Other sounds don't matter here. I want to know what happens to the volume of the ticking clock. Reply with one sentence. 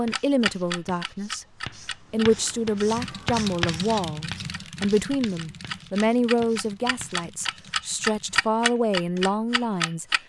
The volume of the ticking clock goes down, then up.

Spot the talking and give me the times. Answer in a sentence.
You can hear the talking from 0.0 to 1.4 s and from 2.1 to 10.1 s.